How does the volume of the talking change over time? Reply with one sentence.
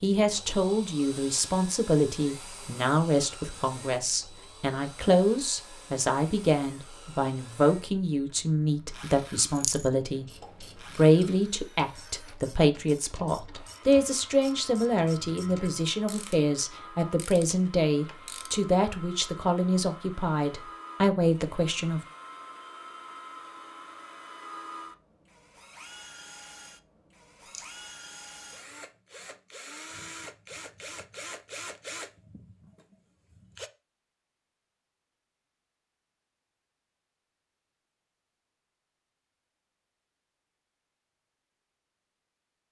The loudness of the talking stays about the same.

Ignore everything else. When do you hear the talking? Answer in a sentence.
The talking can be heard from 0.0 to 10.2 s and from 10.8 to 22.0 s.